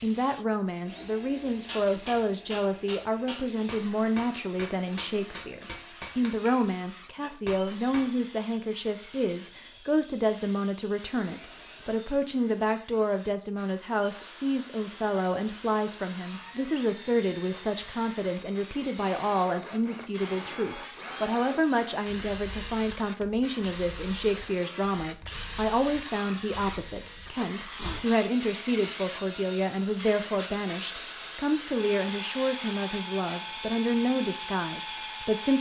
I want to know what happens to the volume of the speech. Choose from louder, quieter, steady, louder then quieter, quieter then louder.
steady.